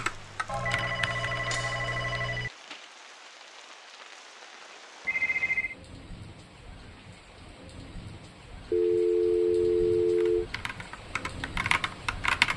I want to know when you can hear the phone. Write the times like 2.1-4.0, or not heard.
0.5-2.5, 5.0-5.8, 8.7-10.4.